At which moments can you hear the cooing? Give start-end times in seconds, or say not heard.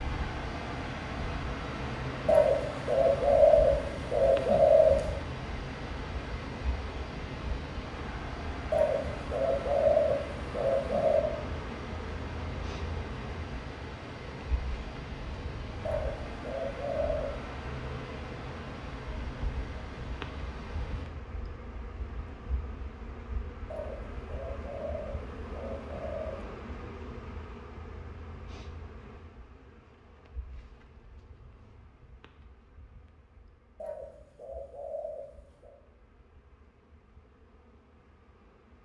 2.2-5.0, 8.7-11.2, 15.8-17.3, 23.7-26.4, 33.8-35.8.